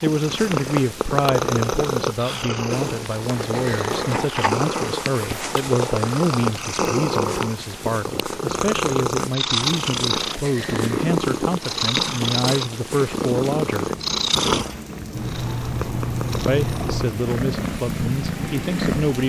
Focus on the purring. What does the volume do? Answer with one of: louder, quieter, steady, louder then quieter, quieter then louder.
steady.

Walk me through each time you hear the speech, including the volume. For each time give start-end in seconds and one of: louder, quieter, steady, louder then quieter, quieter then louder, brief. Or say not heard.
0.0-13.9 steady
16.4-19.2 brief.